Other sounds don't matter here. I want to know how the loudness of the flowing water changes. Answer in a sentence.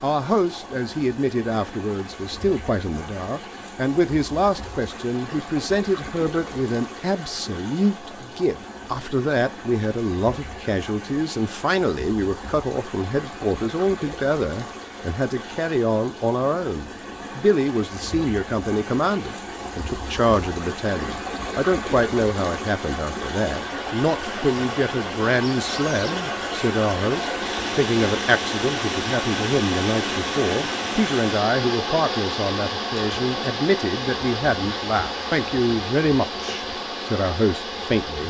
The loudness of the flowing water goes up.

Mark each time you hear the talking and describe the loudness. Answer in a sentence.
The talking can be heard from 0.0 to 38.2 s, at a steady volume.